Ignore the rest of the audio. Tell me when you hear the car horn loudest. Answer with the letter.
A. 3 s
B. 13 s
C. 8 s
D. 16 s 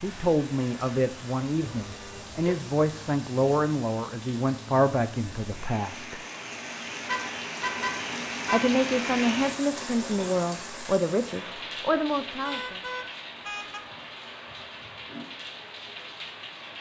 C.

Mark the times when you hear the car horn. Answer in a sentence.
The car horn can be heard from 1.6 to 2.4 s, from 7.0 to 8.8 s and from 12.4 to 13.8 s.